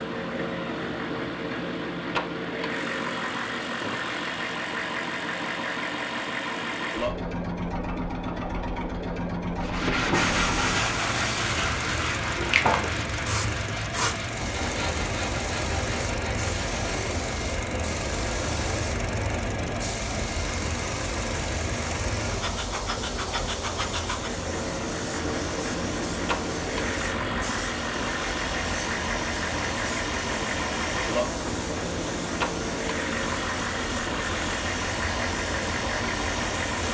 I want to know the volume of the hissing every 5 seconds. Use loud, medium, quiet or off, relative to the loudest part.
off, off, loud, loud, loud, loud, loud, loud.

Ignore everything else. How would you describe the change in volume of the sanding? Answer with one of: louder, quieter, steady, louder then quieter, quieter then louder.
quieter.